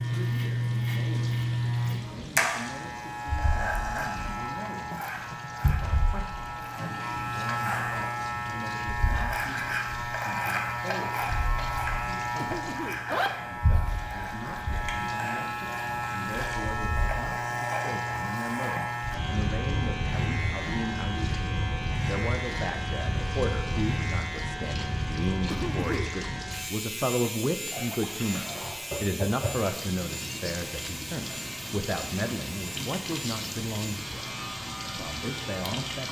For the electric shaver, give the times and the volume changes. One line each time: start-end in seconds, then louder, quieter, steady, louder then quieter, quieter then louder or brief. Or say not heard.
0.0-36.0 quieter.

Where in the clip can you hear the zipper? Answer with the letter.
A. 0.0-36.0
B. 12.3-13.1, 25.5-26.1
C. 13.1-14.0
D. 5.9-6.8
C.